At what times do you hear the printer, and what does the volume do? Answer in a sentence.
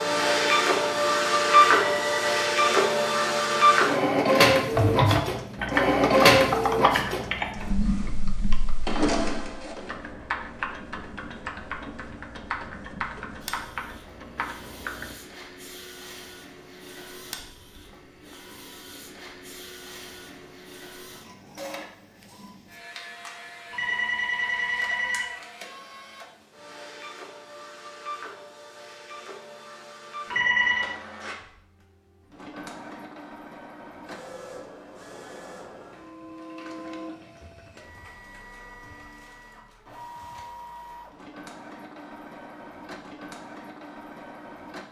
The printer can be heard from 0.0 to 44.8 s, getting quieter.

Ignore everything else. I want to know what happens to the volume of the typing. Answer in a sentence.
The volume of the typing goes down.